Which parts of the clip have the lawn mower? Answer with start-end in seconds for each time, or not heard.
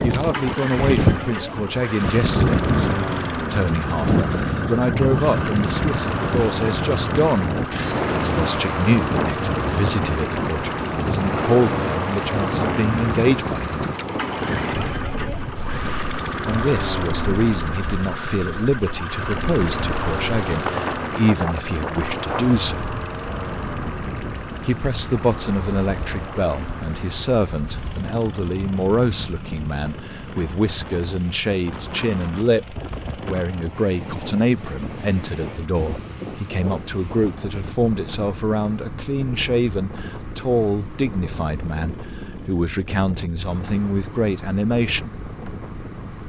0.0-46.2.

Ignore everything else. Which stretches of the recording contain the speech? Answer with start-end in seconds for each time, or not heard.
0.0-13.8, 16.4-22.9, 24.6-45.1.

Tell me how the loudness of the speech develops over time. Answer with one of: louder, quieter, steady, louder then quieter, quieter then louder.
steady.